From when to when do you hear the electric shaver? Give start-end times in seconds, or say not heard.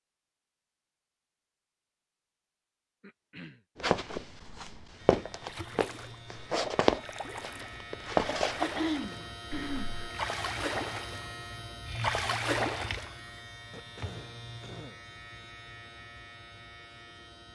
5.0-17.5.